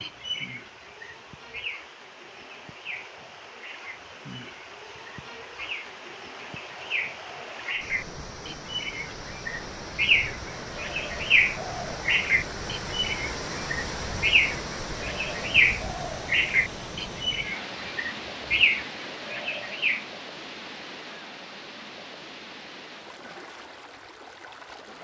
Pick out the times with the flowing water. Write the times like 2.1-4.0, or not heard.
0.0-24.9.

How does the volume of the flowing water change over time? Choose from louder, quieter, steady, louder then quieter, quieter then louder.
louder then quieter.